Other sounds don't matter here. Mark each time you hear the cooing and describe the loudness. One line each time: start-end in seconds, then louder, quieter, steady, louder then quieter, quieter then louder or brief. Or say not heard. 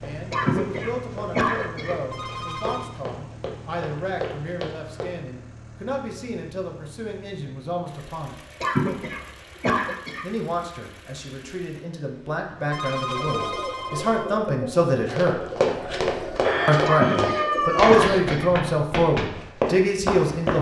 13.1-18.2 louder.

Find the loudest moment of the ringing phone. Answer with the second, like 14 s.
13 s.